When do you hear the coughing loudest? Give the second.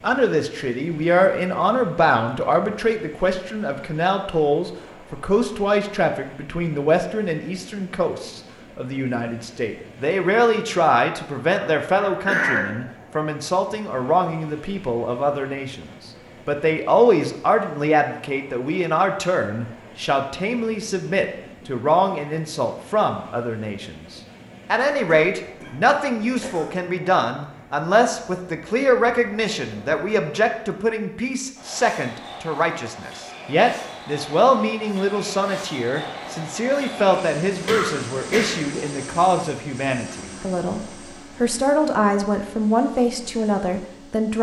12 s.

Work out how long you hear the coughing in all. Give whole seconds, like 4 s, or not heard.
4 s.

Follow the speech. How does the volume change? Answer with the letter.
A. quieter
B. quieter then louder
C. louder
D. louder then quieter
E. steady
E.